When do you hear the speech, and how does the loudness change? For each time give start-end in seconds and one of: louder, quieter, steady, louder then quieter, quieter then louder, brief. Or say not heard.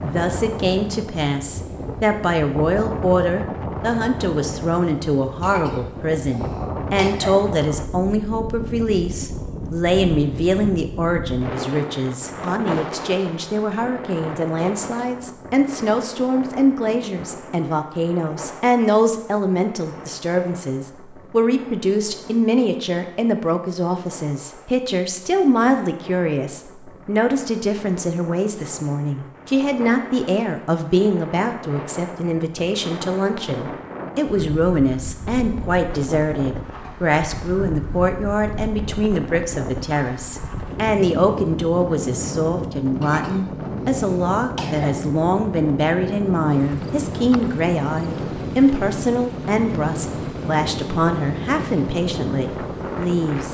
0.0-53.4 steady.